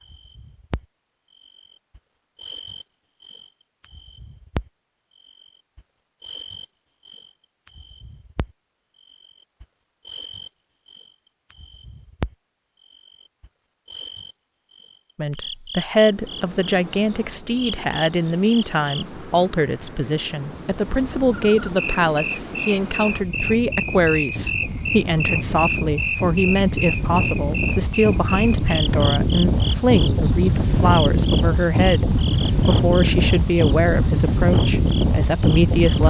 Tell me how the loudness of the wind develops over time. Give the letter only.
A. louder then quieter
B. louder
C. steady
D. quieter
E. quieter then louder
B.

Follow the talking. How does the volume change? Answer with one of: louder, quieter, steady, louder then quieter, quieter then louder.
steady.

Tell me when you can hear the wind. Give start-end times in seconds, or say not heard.
15.9-36.0.